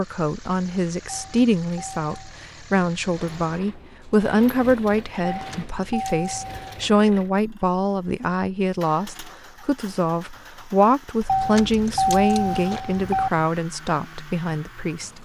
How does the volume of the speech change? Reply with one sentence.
The volume of the speech stays about the same.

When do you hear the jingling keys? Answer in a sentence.
The jingling keys can be heard from 1.1 to 2.1 s, from 5.2 to 6.8 s and from 11.2 to 13.3 s.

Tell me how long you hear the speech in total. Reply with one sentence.
You can hear the speech for 15 seconds altogether.